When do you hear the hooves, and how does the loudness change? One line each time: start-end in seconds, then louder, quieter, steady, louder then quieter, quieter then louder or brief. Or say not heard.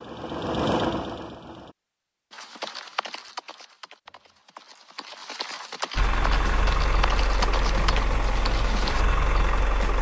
2.3-9.1 quieter then louder.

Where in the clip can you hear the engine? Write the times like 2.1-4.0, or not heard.
0.0-1.8, 6.0-9.9.